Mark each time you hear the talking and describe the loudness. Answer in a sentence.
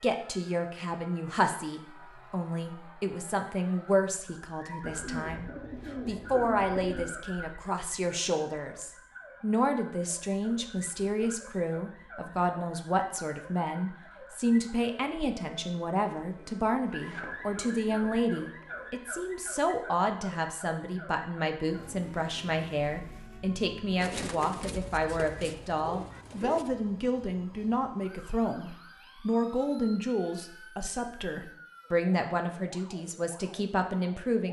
You can hear the talking from 0.0 to 34.4 s, at a steady volume.